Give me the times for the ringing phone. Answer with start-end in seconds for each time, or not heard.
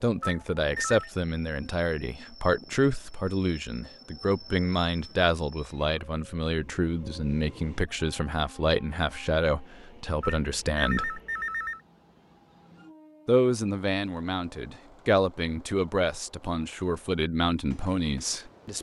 0.2-1.1, 10.2-11.8.